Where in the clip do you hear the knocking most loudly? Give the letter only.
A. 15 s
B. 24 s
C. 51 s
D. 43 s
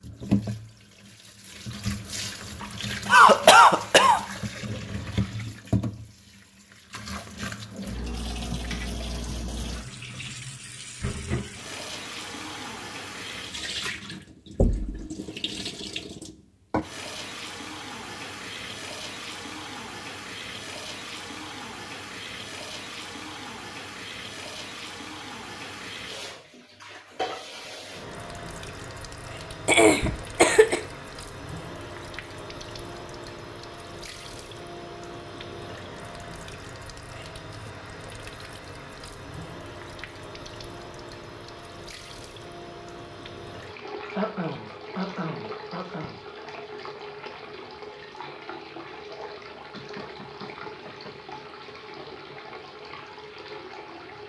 A.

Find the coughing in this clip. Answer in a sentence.
The coughing can be heard from 3.0 to 4.2 s, from 29.6 to 30.8 s and from 44.1 to 46.1 s.